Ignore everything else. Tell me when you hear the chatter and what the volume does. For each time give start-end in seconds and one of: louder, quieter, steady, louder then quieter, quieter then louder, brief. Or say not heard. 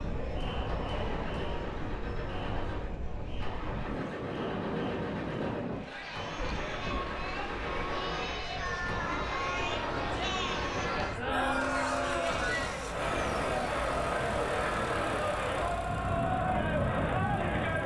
0.0-17.8 louder.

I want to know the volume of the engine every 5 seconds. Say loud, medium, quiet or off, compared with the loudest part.
medium, loud, loud, loud.